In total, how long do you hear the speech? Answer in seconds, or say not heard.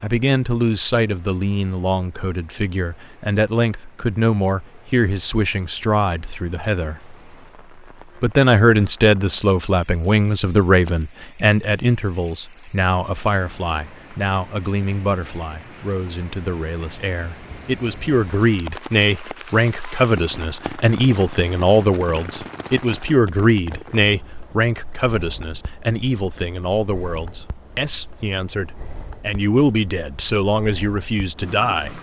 31 s.